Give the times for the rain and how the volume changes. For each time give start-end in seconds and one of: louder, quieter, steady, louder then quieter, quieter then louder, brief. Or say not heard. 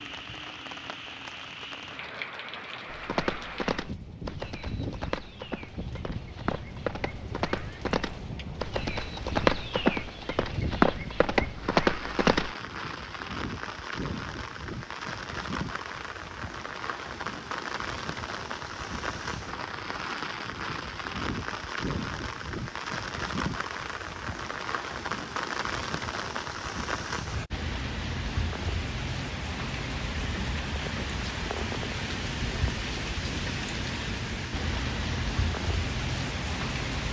0.0-37.0 louder.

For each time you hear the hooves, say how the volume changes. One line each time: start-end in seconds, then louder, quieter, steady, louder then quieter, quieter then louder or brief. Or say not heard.
2.9-12.6 louder.